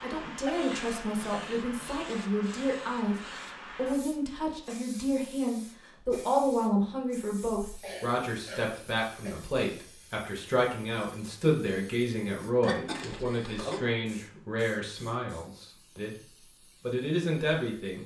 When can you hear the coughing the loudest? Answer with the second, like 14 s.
13 s.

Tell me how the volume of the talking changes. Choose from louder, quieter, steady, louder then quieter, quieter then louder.
steady.